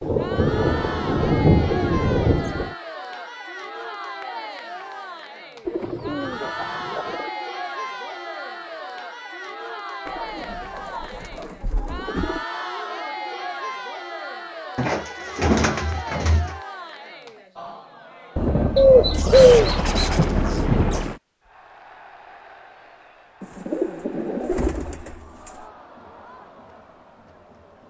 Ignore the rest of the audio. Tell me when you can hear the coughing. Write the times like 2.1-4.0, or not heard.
not heard.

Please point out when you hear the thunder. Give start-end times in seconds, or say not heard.
0.0-2.8, 18.4-21.2.